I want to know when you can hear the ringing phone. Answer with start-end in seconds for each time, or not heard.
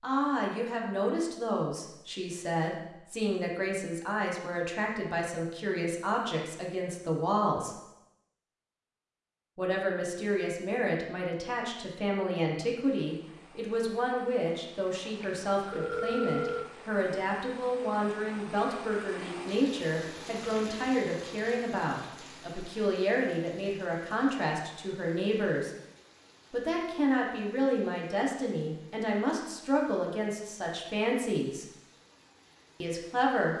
15.2-16.6.